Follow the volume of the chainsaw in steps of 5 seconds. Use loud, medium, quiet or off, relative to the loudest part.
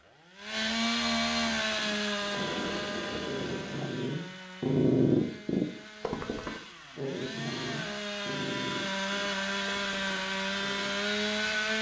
loud, medium, loud.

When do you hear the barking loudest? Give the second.
5 s.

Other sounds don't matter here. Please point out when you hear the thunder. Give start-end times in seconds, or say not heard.
2.2-3.9.